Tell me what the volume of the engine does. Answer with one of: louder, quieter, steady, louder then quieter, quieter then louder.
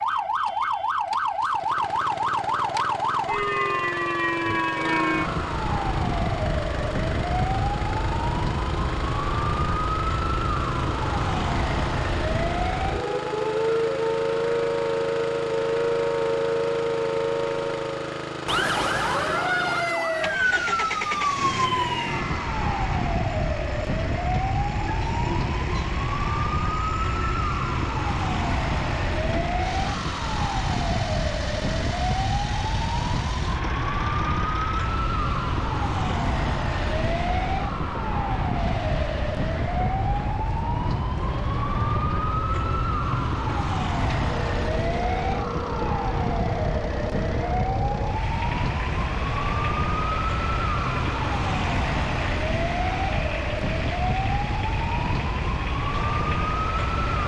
steady.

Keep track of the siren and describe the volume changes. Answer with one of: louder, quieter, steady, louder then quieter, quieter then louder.
steady.